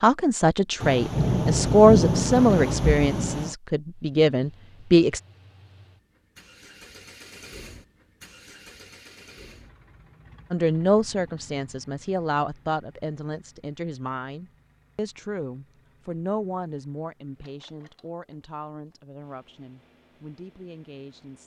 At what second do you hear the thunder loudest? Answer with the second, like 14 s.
2 s.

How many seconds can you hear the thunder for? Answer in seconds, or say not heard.
3 s.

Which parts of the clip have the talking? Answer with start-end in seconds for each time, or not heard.
0.0-5.2, 10.5-21.4.